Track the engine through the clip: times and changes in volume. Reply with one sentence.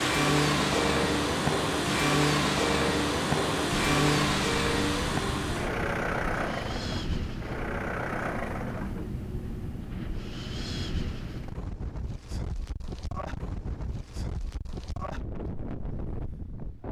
You can hear the engine from 0.0 to 9.1 s, getting quieter.